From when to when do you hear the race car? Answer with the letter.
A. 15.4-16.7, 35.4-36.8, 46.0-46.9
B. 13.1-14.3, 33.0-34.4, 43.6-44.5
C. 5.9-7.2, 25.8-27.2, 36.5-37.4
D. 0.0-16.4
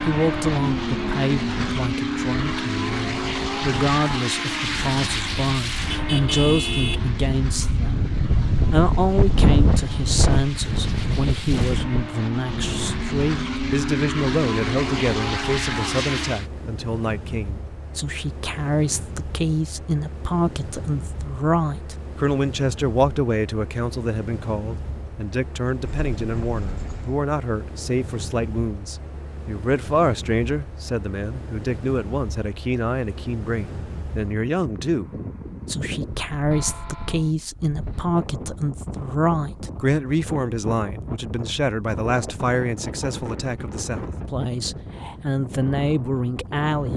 D.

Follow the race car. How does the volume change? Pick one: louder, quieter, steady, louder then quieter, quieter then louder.
quieter then louder.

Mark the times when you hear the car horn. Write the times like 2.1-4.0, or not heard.
5.9-7.2, 25.8-27.2, 36.5-37.4.